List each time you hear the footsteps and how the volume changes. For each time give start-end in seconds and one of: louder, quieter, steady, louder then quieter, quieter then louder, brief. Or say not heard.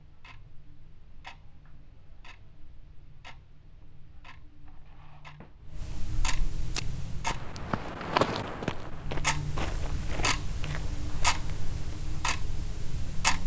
6.7-12.0 louder then quieter.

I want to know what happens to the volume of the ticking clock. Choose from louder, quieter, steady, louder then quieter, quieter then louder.
louder.